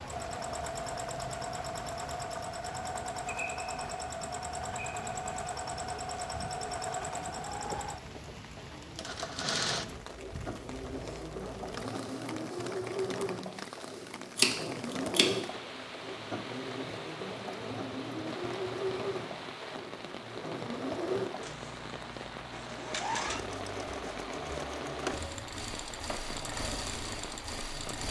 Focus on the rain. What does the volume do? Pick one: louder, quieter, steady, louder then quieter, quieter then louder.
steady.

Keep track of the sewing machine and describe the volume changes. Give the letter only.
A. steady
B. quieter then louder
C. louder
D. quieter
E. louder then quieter
A.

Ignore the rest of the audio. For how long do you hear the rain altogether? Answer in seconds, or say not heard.
28 s.